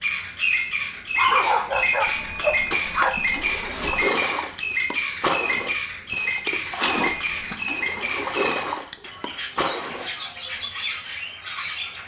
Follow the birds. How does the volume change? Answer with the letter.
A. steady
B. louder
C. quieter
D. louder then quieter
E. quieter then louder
C.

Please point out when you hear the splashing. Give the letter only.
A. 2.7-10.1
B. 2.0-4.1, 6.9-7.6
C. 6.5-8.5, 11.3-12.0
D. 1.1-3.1
A.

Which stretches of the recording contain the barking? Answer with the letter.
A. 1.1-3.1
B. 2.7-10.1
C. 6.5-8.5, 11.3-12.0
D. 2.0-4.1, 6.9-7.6
A.